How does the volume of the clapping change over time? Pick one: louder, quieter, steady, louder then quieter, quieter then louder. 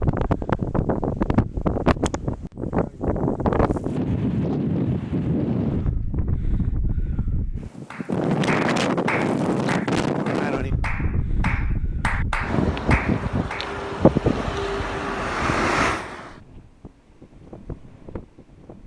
quieter then louder.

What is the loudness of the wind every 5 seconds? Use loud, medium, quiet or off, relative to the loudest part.
loud, loud, loud, medium.